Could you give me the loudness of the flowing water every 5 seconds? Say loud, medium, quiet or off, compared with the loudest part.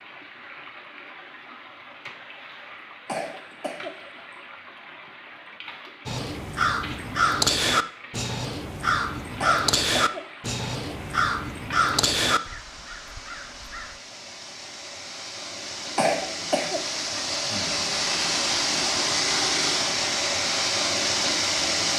quiet, quiet, quiet, loud, loud.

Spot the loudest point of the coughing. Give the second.
16 s.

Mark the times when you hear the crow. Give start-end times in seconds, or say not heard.
6.0-13.9.